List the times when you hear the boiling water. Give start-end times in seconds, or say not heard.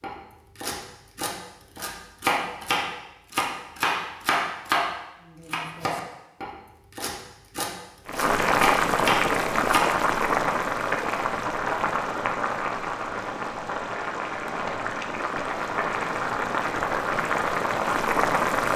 8.1-18.7.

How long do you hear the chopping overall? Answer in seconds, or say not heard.
10 s.